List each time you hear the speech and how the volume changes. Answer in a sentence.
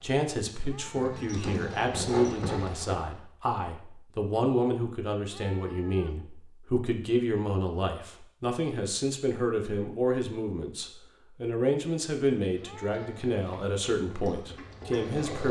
You can hear the speech from 0.0 to 15.4 s, at a steady volume.